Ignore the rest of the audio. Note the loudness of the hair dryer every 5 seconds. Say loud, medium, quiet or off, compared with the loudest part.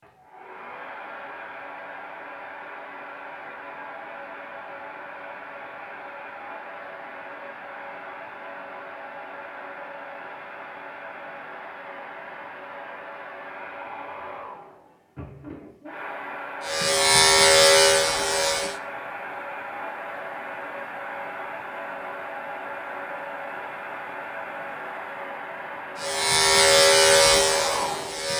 medium, medium, medium, loud, loud, loud.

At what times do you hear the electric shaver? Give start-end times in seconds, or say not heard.
16.6-18.8, 25.9-28.3.